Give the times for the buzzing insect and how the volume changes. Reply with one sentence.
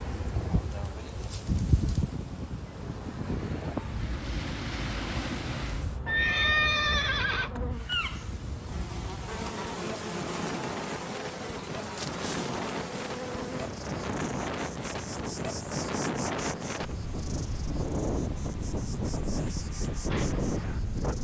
The buzzing insect can be heard from 0.0 to 21.2 s, getting louder then quieter.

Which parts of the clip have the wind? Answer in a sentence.
You can hear the wind from 0.0 to 21.2 s.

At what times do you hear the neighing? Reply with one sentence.
You can hear the neighing from 6.0 to 7.5 s.